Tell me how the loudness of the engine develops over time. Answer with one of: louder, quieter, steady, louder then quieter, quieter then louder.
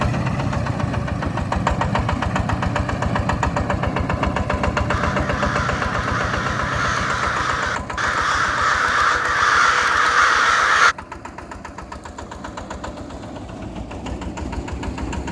quieter.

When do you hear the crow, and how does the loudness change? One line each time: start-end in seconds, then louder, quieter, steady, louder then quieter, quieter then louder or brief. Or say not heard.
4.9-10.9 louder.